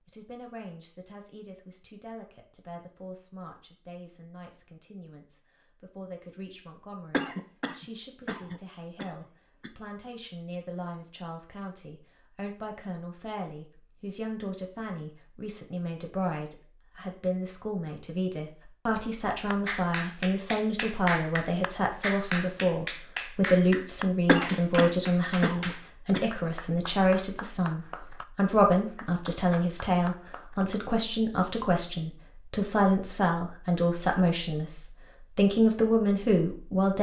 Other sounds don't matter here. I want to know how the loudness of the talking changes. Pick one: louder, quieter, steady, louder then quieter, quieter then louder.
louder.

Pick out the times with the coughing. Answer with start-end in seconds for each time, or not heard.
7.1-9.7, 24.2-26.2.